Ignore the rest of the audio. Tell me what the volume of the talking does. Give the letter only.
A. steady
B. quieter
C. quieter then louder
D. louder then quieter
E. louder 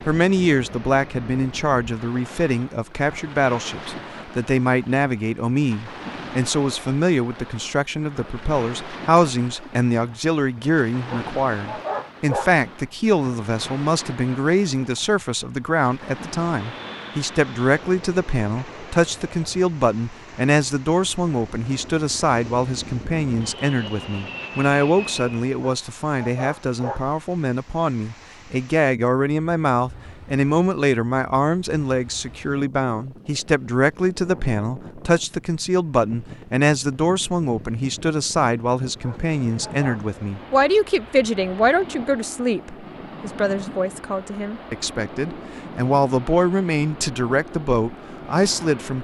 A.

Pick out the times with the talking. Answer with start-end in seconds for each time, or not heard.
0.1-48.9.